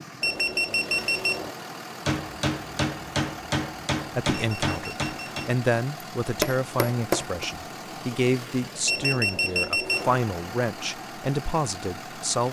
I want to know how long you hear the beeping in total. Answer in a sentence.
You can hear the beeping for 4 seconds altogether.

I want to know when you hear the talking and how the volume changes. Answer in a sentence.
The talking can be heard from 4.2 to 12.4 s, at a steady volume.